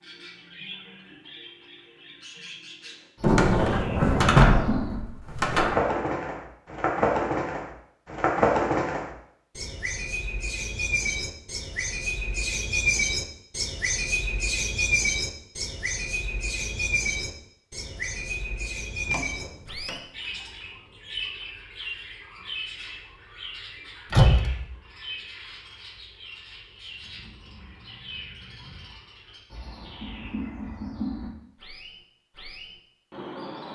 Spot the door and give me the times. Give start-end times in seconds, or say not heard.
3.2-5.8, 19.1-20.0, 24.1-24.6.